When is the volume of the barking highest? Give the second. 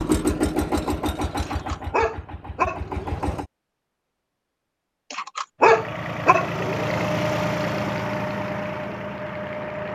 6 s.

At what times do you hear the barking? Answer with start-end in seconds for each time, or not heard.
1.4-3.4, 5.1-7.0.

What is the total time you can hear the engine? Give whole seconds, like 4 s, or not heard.
8 s.